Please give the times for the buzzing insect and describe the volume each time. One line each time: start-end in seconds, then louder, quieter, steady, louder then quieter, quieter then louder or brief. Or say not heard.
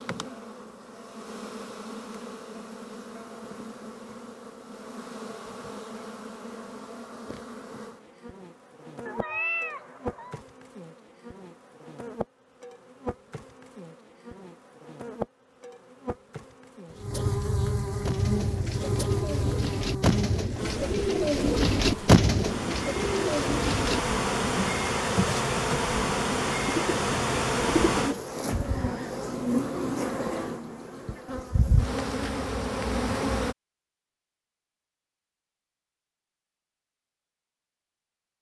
0.0-33.5 louder.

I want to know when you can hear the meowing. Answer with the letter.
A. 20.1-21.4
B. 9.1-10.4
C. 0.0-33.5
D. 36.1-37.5
B.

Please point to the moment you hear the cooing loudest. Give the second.
22 s.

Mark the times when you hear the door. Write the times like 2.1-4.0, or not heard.
not heard.